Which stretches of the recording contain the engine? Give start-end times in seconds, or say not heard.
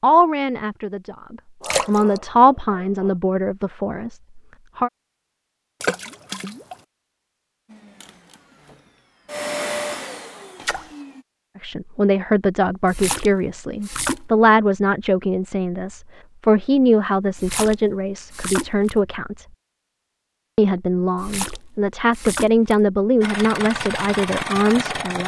7.7-11.2, 23.2-25.2.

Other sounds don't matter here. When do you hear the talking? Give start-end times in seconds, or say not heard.
0.0-4.9, 11.6-19.4, 20.6-25.2.